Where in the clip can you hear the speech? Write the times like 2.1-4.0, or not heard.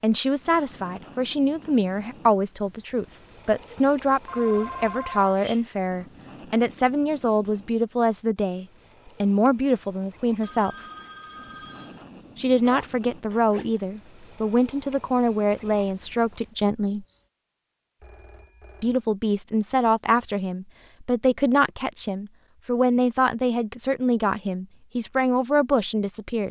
0.0-10.8, 12.3-17.1, 18.8-26.4.